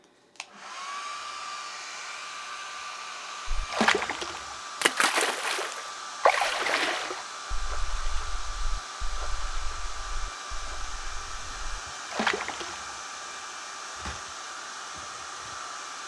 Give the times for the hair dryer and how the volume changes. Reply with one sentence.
The hair dryer can be heard from 0.0 to 16.0 s, at a steady volume.